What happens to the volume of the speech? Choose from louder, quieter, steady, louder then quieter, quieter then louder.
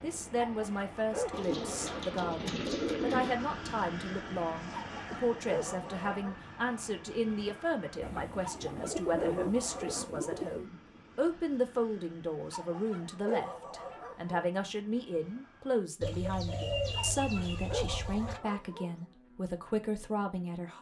steady.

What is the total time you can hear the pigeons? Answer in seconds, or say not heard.
7 s.